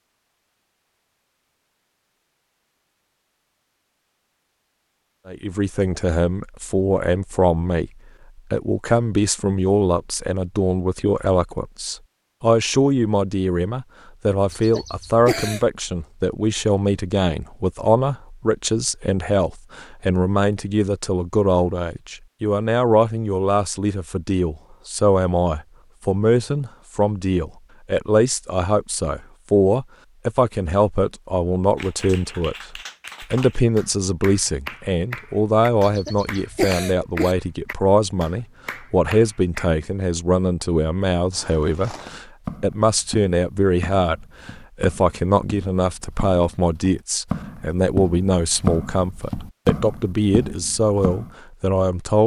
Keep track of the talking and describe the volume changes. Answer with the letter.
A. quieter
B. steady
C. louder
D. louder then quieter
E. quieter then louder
B.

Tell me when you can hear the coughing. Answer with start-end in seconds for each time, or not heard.
14.5-15.7, 35.8-37.4.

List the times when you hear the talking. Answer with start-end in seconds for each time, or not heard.
5.2-52.2.